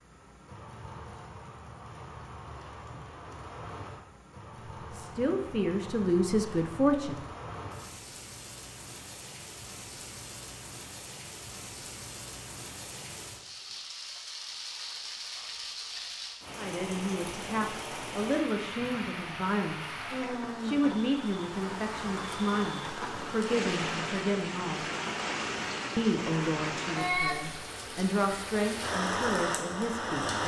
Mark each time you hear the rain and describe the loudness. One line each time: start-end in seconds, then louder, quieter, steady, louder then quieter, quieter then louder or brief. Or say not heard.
0.0-30.4 louder.